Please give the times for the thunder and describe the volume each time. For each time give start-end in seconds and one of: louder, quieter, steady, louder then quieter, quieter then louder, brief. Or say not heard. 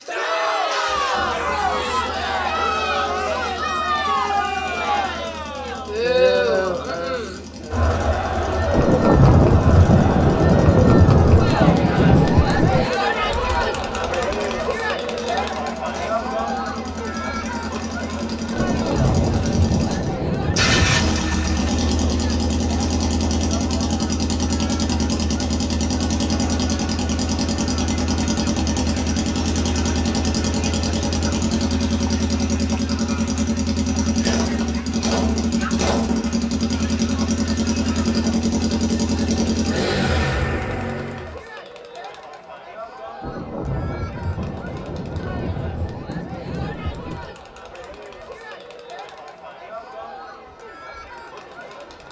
8.7-12.9 steady
18.5-21.1 brief
43.2-47.4 steady.